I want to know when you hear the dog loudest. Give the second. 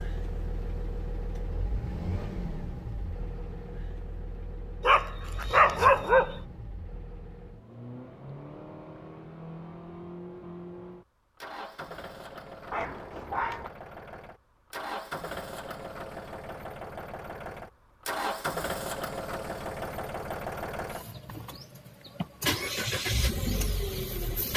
6 s.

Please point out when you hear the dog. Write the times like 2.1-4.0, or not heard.
4.8-6.3, 12.7-13.7.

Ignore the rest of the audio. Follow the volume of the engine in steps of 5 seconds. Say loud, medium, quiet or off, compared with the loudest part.
medium, medium, medium, loud, loud.